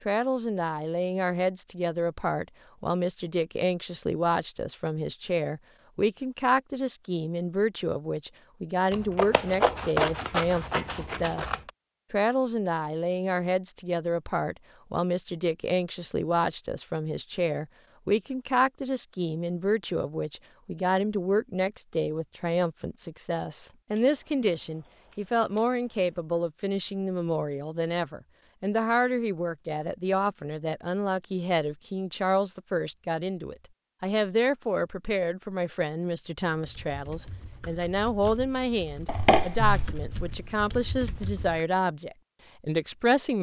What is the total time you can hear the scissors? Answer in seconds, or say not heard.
6 s.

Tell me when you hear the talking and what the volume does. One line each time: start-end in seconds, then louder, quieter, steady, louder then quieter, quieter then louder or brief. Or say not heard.
0.1-43.3 steady.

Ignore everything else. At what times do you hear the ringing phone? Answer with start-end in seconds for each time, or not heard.
not heard.